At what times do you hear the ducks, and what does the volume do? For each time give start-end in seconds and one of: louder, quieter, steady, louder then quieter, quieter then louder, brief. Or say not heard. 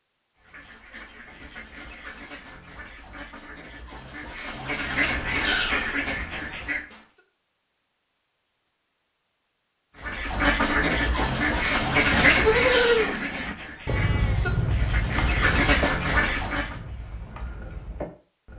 0.4-7.0 louder
10.0-16.8 quieter then louder.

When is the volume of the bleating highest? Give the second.
13 s.